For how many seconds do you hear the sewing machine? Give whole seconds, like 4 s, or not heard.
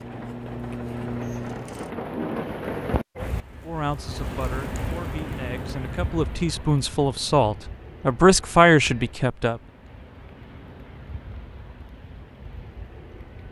2 s.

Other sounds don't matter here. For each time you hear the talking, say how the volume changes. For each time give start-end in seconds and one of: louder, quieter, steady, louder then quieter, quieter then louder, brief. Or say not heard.
3.6-9.6 louder.